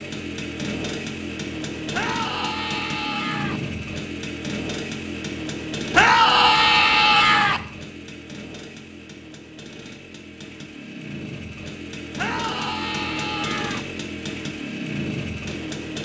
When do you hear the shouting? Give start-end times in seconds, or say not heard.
1.9-3.6, 5.9-7.6, 12.2-13.8.